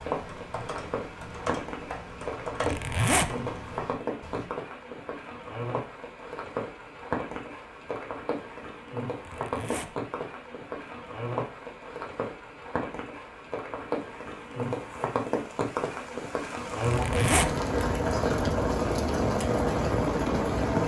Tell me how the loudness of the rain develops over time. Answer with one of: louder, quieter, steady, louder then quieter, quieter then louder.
louder.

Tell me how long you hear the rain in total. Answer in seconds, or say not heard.
21 s.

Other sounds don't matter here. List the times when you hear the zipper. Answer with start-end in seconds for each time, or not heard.
2.6-3.4, 9.2-9.9, 16.8-17.6.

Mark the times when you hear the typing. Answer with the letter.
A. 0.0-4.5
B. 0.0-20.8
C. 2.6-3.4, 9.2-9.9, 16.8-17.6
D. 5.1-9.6
A.